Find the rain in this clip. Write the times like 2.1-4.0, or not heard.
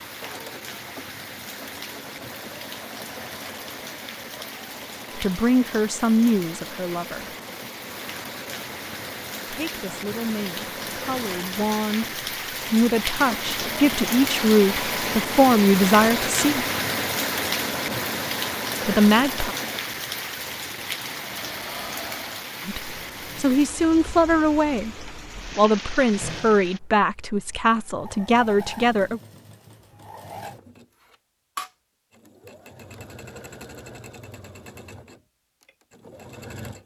0.0-26.8.